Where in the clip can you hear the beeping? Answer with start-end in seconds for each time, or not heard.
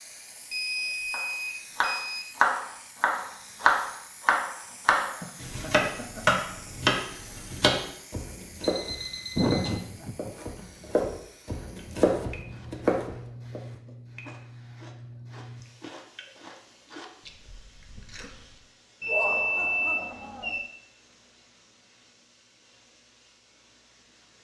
0.5-2.3, 8.6-9.8, 19.0-20.6.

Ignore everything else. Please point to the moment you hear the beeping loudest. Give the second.
19 s.